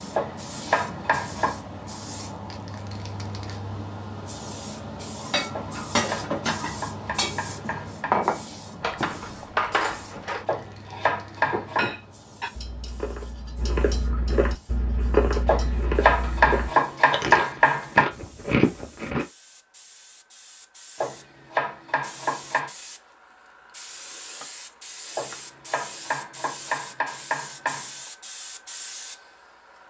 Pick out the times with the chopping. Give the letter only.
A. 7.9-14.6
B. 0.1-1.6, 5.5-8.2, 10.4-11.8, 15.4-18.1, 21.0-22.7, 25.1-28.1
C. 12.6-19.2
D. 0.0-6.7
B.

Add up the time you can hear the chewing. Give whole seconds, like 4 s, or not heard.
7 s.